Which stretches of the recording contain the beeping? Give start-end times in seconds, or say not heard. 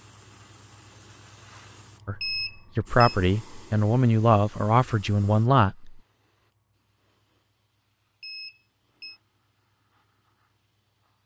2.2-3.1, 8.2-9.2.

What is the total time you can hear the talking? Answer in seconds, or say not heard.
4 s.